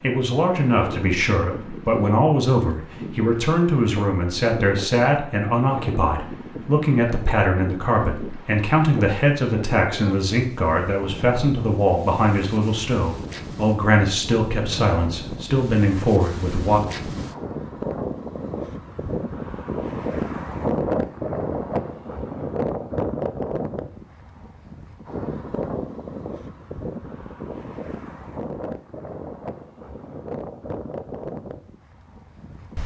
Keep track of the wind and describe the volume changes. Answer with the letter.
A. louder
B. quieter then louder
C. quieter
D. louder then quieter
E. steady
D.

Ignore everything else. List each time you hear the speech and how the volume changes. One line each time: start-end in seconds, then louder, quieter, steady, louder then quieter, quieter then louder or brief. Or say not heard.
0.0-16.8 steady.